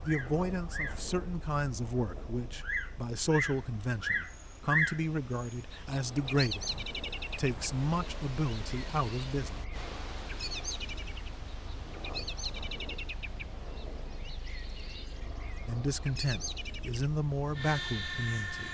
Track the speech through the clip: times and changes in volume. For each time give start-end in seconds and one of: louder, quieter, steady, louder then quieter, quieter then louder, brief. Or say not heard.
0.0-9.7 steady
15.7-18.6 brief.